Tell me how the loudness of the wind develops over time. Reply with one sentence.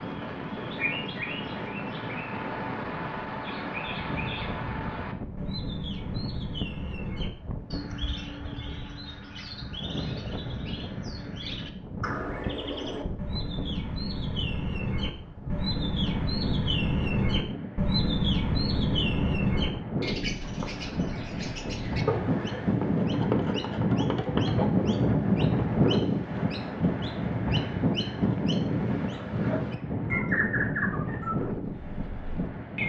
The volume of the wind goes up.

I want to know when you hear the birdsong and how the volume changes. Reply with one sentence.
You can hear the birdsong from 0.0 to 32.8 s, getting louder then quieter.